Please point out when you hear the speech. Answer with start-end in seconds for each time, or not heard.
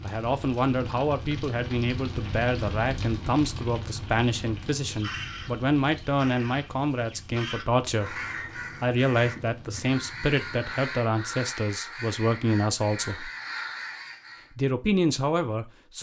0.0-8.2, 8.8-13.3, 14.6-15.9.